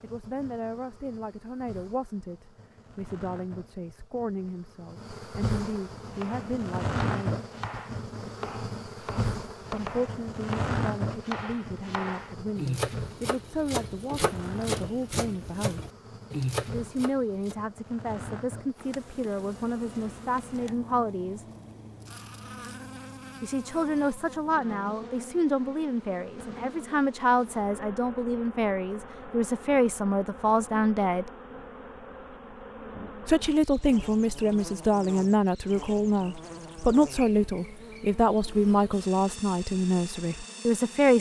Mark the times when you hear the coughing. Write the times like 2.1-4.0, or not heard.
not heard.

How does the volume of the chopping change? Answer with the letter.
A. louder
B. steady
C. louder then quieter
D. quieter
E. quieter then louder
A.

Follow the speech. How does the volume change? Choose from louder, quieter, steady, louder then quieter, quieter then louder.
louder.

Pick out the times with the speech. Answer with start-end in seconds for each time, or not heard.
0.0-7.4, 9.7-15.9, 16.7-21.4, 23.4-31.2, 33.2-41.1.